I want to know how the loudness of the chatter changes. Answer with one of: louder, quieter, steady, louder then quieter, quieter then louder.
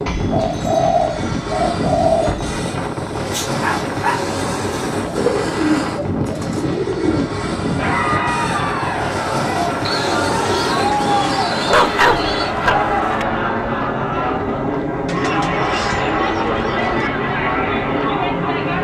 steady.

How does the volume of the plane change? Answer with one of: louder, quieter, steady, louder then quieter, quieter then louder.
steady.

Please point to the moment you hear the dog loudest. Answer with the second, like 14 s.
12 s.